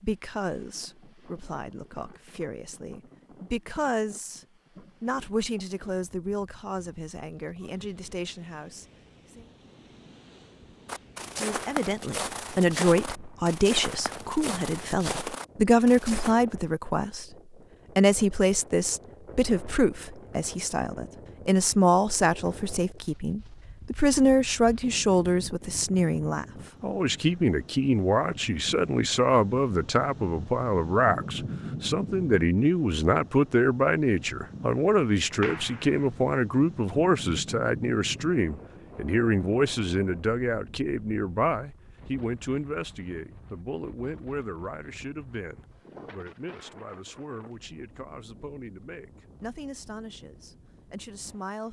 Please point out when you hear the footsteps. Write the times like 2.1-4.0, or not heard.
10.8-16.4.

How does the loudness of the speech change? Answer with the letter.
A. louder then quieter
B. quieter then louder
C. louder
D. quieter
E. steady
A.